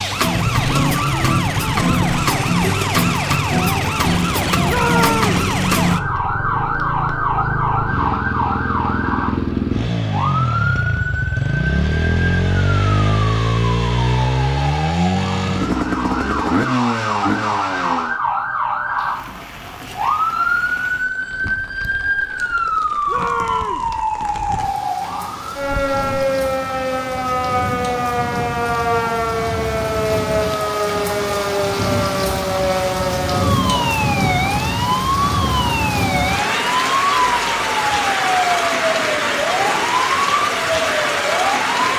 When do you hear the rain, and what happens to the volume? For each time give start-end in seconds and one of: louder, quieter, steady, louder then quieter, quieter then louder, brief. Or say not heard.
18.9-41.9 louder.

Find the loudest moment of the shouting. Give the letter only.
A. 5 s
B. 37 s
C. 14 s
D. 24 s
A.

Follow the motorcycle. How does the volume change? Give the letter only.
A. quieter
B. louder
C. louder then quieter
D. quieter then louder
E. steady
B.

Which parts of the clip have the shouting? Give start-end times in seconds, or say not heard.
4.7-5.4, 23.1-23.9.